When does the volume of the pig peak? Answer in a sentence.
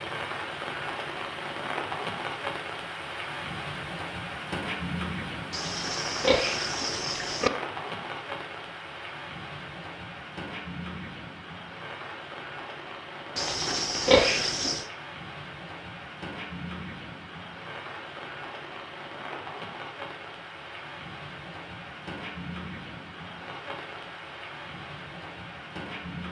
The volume of the pig peaks at 14 seconds.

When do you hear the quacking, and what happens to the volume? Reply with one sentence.
You can't hear the quacking here.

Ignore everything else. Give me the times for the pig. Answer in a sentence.
You can hear the pig from 5.5 to 7.5 s and from 13.3 to 14.8 s.